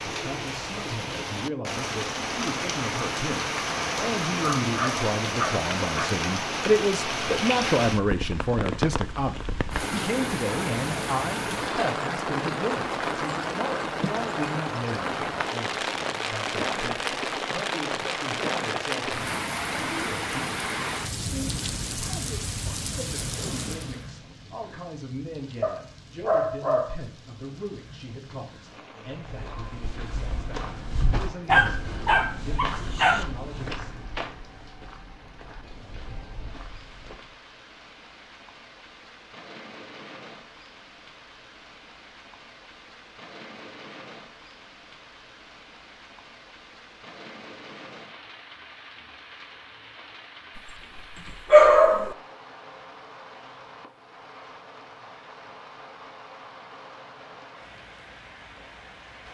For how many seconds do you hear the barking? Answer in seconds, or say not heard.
6 s.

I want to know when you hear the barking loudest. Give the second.
52 s.